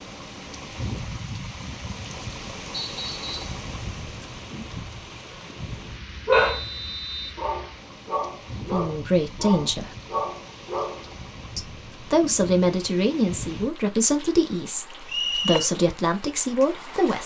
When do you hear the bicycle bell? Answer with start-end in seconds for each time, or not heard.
not heard.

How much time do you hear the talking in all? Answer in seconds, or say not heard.
7 s.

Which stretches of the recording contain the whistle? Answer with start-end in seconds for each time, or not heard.
2.7-3.4, 6.3-7.3, 15.1-15.7.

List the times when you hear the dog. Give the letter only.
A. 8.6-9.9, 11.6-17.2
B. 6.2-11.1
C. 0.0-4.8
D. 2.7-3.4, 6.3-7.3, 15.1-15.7
B.